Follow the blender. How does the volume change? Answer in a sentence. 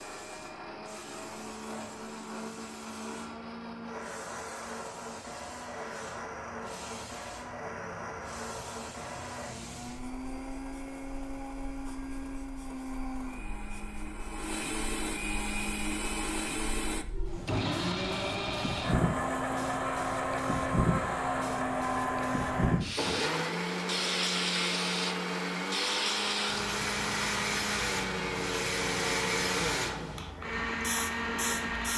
The volume of the blender goes up.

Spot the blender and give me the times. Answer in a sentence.
The blender can be heard from 0.0 to 31.9 s.